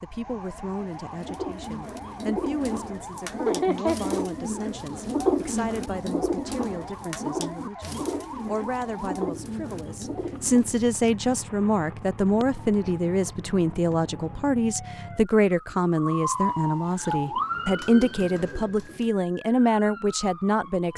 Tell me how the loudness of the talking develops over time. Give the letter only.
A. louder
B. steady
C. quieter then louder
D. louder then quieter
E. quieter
A.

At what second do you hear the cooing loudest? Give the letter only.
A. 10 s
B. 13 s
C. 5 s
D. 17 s
C.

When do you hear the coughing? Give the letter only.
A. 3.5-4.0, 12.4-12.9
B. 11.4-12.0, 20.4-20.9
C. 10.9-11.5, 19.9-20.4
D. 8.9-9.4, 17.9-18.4
A.